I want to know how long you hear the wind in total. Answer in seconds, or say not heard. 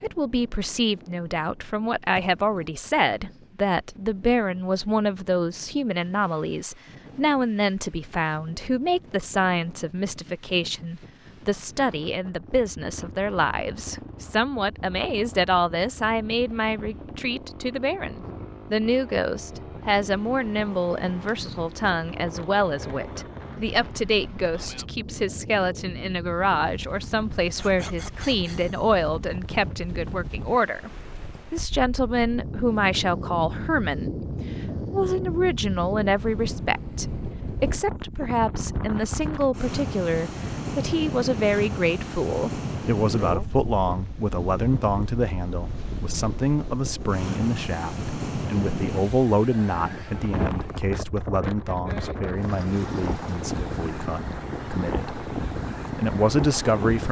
57 s.